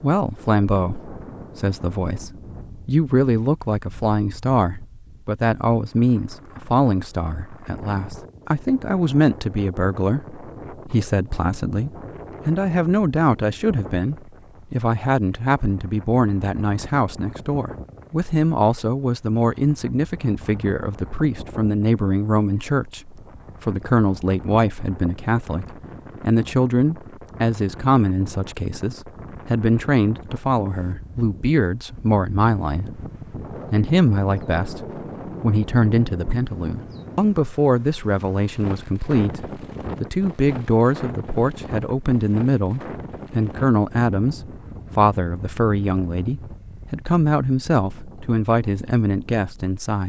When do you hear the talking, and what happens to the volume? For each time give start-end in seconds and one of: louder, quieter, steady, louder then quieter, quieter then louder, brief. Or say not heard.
0.0-33.0 steady
33.7-50.0 steady.